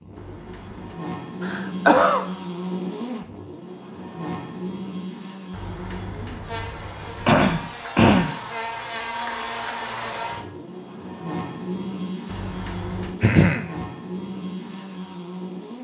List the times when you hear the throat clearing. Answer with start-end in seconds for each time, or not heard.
1.4-2.2, 7.2-8.3, 13.2-13.8.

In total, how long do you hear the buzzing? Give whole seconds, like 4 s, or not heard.
16 s.